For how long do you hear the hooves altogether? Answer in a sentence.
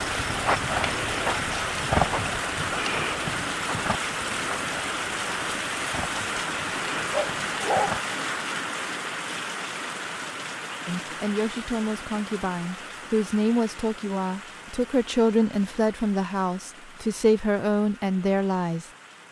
You can hear the hooves for 8 seconds altogether.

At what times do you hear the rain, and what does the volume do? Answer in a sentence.
The rain can be heard from 0.0 to 19.2 s, getting quieter.